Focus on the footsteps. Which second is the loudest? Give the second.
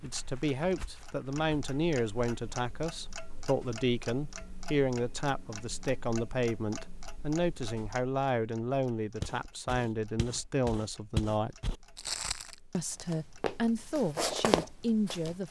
14 s.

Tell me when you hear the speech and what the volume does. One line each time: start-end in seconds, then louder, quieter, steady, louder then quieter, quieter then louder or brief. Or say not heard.
0.0-11.6 steady
12.7-15.4 brief.